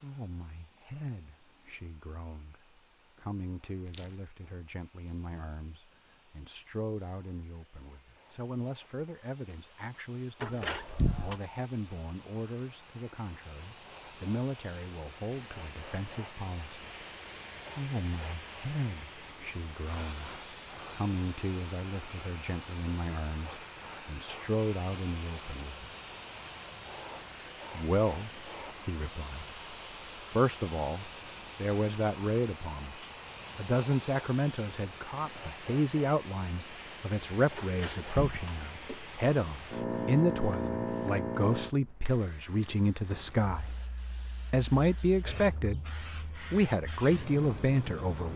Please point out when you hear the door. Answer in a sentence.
The door can be heard from 10.4 to 11.4 s and from 37.5 to 39.0 s.